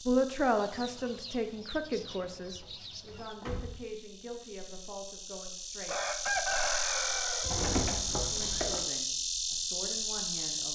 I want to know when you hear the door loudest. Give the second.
8 s.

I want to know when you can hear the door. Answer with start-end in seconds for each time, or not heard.
2.1-3.8, 7.4-8.8.